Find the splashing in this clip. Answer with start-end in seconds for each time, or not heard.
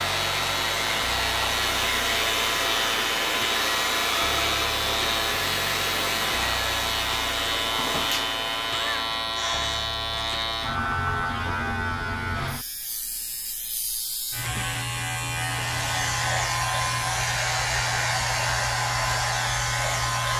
not heard.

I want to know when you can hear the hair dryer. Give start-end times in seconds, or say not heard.
0.0-9.9, 15.6-20.3.